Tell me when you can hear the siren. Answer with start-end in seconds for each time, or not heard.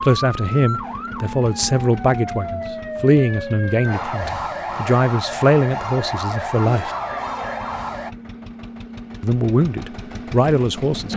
0.0-8.2.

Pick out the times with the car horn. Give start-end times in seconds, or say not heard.
not heard.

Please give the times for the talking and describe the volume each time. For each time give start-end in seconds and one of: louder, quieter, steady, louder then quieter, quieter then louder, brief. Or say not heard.
0.0-6.9 steady
9.2-11.1 brief.